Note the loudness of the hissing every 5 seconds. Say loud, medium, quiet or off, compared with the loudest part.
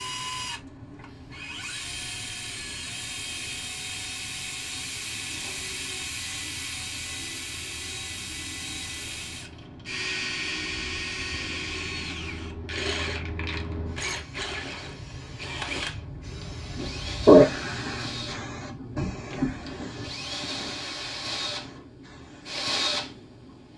quiet, quiet, quiet, loud, quiet.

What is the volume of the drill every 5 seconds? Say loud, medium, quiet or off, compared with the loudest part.
loud, loud, loud, medium, loud.